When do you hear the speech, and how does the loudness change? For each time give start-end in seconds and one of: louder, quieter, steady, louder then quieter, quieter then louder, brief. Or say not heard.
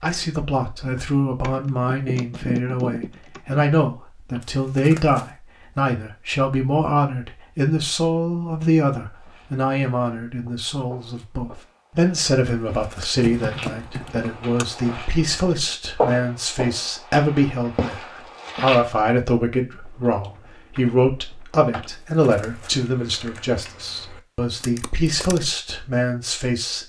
0.0-26.8 steady.